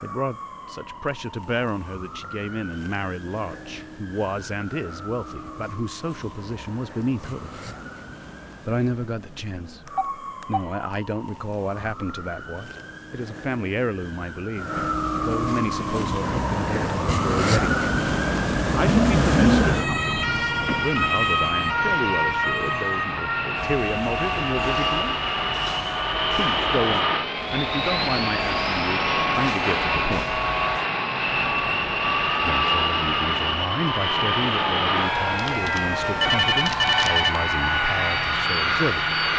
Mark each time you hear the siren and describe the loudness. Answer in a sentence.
You can hear the siren from 0.0 to 39.3 s, getting louder then quieter.